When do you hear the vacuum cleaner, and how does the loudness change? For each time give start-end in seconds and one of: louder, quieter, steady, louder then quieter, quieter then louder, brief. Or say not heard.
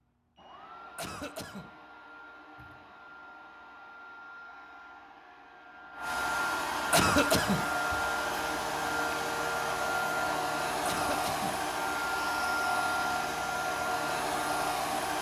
0.0-15.1 louder.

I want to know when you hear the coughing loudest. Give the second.
7 s.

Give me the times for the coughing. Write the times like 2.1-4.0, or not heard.
0.9-1.7, 6.9-7.7, 10.8-11.6.